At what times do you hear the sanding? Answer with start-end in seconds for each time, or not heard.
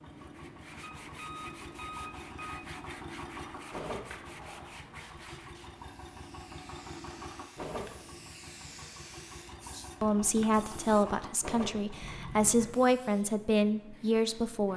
0.1-5.7.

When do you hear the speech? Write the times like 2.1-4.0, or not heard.
9.8-14.7.